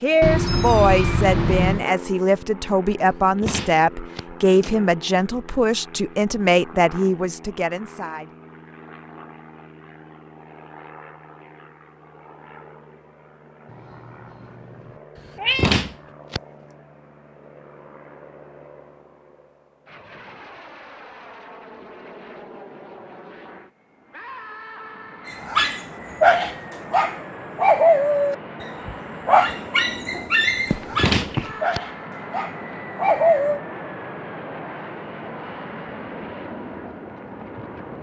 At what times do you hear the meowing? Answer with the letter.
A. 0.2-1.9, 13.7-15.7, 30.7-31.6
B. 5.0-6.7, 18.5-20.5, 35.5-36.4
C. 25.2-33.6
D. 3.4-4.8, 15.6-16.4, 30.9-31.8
A.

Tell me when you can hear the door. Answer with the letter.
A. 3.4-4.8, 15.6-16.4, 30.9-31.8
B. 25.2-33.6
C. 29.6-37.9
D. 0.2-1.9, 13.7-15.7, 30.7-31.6
A.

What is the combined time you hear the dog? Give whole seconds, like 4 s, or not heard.
8 s.